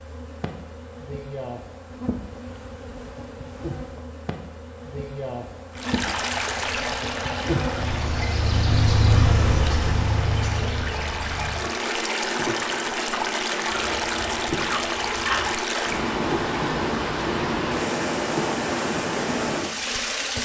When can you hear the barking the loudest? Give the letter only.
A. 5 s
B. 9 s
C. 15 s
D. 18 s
C.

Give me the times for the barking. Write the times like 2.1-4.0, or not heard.
13.7-15.6.